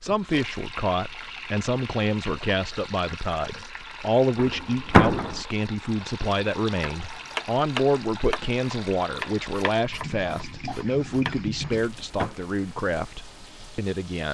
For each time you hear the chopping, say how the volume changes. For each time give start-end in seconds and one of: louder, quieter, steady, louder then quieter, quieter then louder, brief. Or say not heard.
6.8-11.3 quieter.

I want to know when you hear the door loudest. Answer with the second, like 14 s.
5 s.